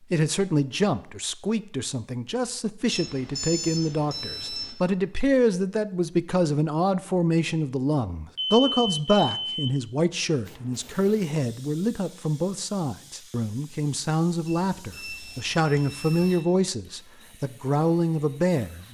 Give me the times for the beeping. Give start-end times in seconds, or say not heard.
2.9-4.7, 8.3-9.7, 14.4-16.5.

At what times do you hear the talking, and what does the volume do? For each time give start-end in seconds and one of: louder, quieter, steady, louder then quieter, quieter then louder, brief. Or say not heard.
0.0-18.8 steady.